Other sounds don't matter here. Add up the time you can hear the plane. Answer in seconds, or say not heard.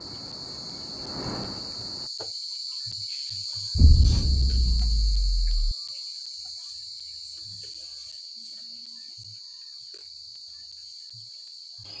2 s.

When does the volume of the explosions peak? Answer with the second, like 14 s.
4 s.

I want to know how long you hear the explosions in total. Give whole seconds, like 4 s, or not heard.
2 s.